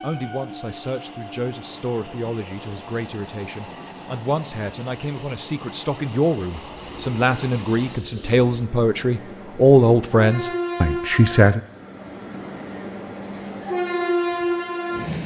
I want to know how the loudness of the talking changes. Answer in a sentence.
The loudness of the talking goes up.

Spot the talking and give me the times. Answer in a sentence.
The talking can be heard from 0.0 to 11.6 s.